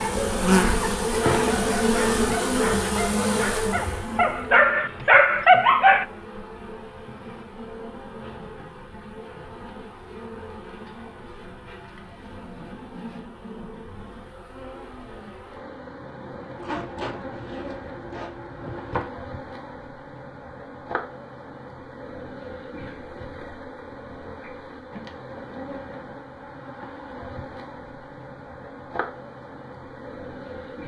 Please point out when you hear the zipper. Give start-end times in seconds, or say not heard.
0.2-1.7, 16.6-19.1.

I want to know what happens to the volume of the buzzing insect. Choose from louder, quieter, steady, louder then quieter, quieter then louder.
quieter.